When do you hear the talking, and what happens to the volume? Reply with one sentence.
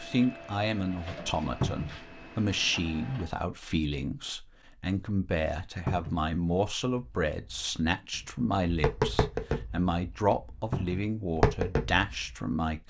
The talking can be heard from 0.0 to 12.8 s, at a steady volume.